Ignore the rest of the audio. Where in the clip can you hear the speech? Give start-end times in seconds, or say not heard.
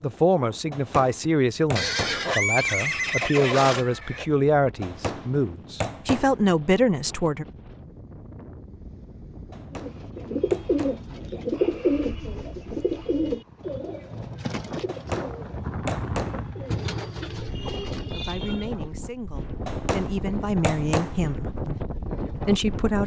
0.0-7.5, 18.1-23.0.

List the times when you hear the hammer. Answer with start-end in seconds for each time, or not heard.
0.7-2.4, 4.8-6.5, 9.5-11.2, 14.8-16.6, 19.6-21.3.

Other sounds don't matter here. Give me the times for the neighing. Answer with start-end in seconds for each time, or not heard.
1.8-4.2.